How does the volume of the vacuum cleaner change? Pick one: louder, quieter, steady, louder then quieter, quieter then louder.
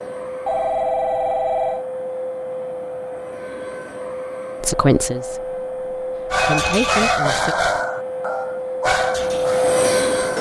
louder.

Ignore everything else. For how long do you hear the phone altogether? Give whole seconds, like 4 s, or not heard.
2 s.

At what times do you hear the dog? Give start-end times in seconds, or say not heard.
6.3-10.3.